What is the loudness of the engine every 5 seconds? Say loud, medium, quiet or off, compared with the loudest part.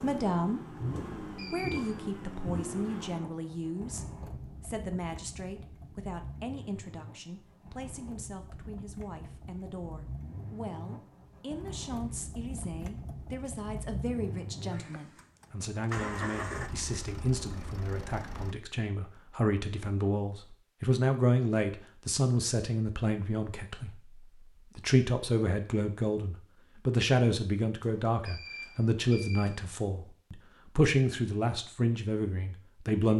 loud, medium, loud, loud, off, off, off.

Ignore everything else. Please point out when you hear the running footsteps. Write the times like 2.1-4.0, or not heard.
not heard.